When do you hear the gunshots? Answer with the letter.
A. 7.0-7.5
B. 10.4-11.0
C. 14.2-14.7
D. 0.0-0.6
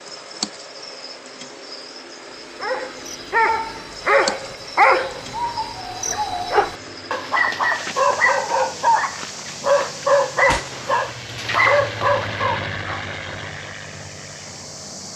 B.